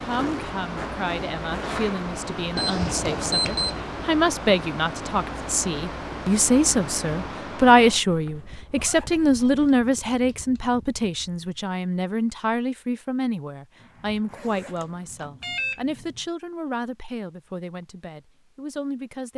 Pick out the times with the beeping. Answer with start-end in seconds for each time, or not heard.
2.5-3.8, 14.8-16.2.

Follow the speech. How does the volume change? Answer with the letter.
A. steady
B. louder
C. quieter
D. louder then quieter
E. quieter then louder
D.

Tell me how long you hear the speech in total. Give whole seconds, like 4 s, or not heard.
19 s.